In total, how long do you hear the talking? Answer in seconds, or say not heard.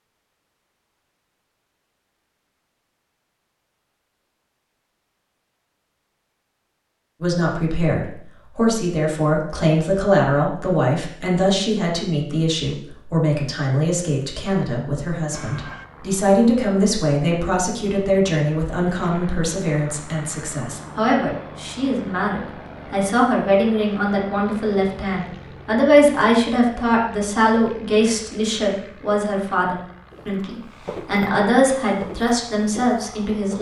26 s.